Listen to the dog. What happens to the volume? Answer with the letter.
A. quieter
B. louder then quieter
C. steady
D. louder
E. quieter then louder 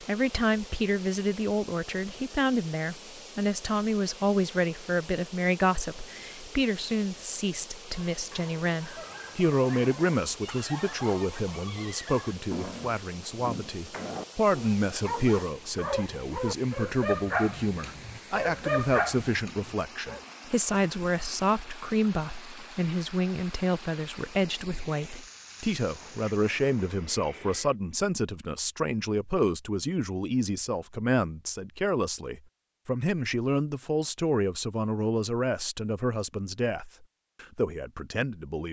D.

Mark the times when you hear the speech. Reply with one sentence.
The speech can be heard from 0.0 to 38.6 s.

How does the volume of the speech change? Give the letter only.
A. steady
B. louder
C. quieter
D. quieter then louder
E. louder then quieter
A.